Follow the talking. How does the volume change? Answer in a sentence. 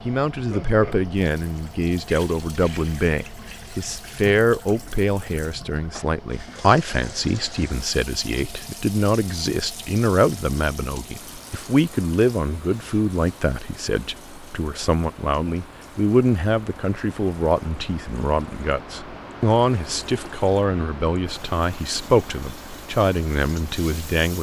The loudness of the talking stays about the same.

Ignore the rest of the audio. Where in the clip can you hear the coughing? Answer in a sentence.
The coughing can't be heard in this clip.